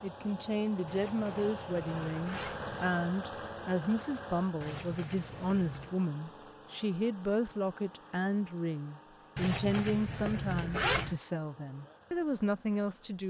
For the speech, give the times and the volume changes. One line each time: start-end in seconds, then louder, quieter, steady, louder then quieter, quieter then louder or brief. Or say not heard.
0.0-13.2 steady.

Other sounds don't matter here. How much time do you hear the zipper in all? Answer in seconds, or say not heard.
5 s.